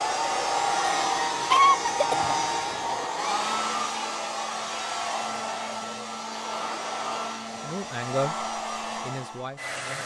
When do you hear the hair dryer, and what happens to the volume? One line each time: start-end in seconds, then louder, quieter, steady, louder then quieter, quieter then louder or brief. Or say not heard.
0.0-10.0 quieter.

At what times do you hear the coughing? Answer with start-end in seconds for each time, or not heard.
1.5-3.0.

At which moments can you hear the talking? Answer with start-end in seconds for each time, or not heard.
7.6-8.3, 9.0-10.0.